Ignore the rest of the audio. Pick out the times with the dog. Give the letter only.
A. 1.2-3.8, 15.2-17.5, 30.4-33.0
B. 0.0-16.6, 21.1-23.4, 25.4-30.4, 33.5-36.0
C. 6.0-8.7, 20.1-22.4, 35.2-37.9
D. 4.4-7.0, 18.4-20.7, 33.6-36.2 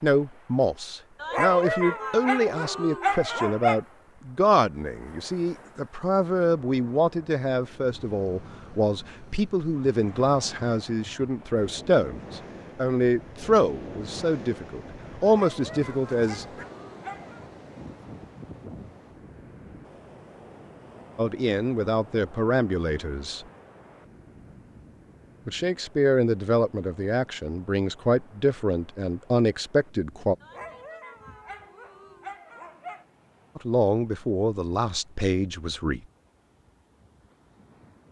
A.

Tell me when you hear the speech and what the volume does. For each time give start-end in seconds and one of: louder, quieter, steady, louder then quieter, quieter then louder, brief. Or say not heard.
0.0-16.6 steady
21.1-23.4 brief
25.4-30.4 quieter then louder
33.5-36.0 brief.